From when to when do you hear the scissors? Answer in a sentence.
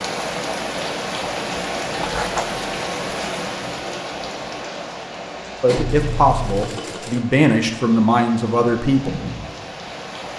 The scissors can be heard from 2.0 to 2.6 s and from 5.8 to 6.7 s.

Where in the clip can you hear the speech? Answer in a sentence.
You can hear the speech from 5.6 to 9.2 s.